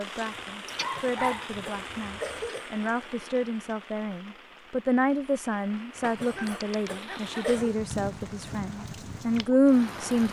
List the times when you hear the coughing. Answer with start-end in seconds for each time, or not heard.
0.7-2.7, 6.0-7.8.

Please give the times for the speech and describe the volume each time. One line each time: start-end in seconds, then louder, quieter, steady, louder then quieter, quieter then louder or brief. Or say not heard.
0.0-10.2 louder.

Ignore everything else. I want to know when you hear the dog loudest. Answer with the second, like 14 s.
1 s.